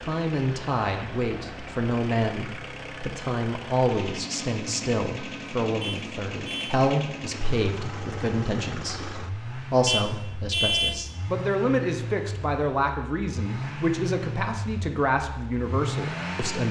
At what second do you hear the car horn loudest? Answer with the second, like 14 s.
11 s.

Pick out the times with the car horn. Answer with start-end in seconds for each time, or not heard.
5.8-6.8, 9.8-11.0.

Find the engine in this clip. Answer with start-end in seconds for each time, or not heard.
0.0-16.6.